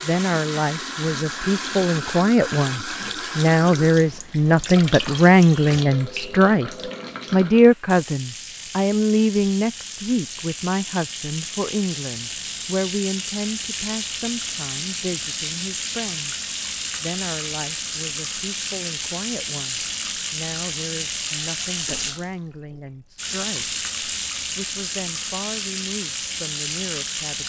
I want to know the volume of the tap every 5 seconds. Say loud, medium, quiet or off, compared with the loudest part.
loud, medium, loud, loud, loud, loud.